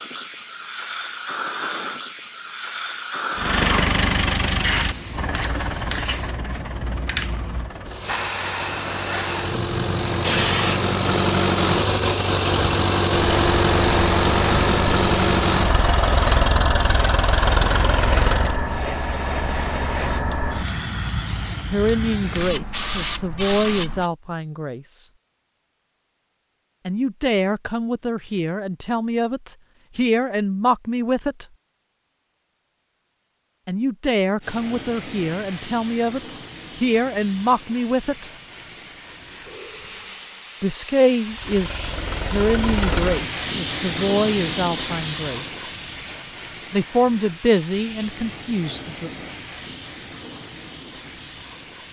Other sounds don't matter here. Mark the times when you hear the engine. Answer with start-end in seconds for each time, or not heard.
3.4-18.6, 41.2-43.2.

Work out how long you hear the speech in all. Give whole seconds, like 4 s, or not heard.
20 s.